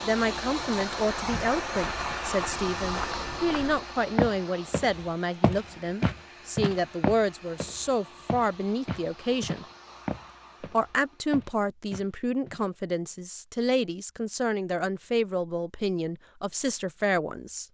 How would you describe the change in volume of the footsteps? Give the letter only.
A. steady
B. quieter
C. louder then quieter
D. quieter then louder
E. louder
C.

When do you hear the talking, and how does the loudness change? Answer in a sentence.
You can hear the talking from 0.0 to 9.7 s, at a steady volume; and from 10.6 to 17.6 s, at a steady volume.